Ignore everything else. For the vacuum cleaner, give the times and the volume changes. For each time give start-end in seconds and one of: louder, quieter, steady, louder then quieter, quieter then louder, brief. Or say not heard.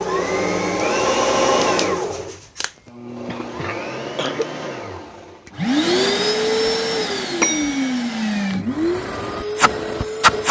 0.0-10.4 quieter then louder.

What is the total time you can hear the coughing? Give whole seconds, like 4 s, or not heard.
2 s.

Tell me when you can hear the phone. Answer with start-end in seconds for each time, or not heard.
7.4-7.9.